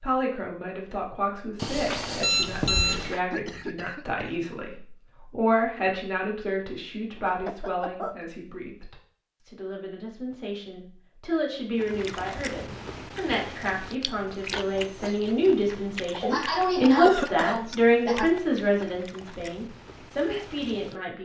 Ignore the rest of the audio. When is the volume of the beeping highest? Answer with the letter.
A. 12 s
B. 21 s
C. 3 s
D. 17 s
C.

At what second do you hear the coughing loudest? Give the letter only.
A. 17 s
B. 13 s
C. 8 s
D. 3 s
A.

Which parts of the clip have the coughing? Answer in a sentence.
You can hear the coughing from 3.3 to 4.3 s, from 7.2 to 8.2 s and from 16.2 to 18.4 s.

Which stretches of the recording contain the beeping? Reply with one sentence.
The beeping can be heard from 1.6 to 3.2 s.